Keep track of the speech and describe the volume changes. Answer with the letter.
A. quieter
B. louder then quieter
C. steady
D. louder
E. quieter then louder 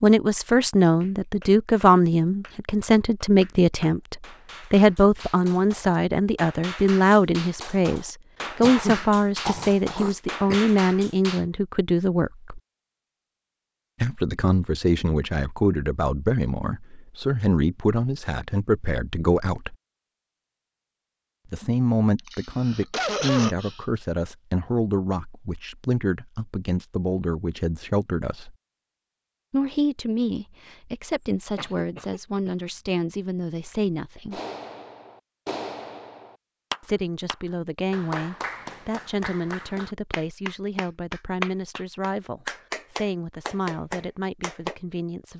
A.